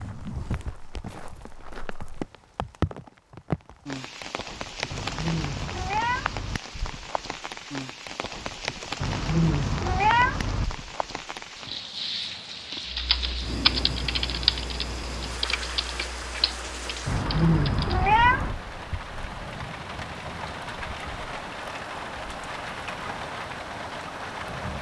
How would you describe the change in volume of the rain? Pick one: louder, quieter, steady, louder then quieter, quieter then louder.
steady.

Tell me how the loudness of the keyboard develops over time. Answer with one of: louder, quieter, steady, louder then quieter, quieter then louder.
quieter.